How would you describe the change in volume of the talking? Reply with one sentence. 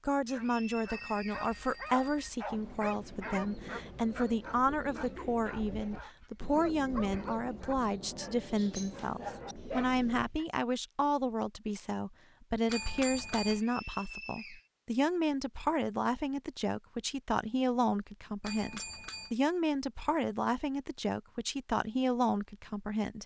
The loudness of the talking stays about the same.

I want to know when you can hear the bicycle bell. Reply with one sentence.
You can hear the bicycle bell from 0.8 to 2.3 s, from 12.7 to 13.6 s and from 18.4 to 19.4 s.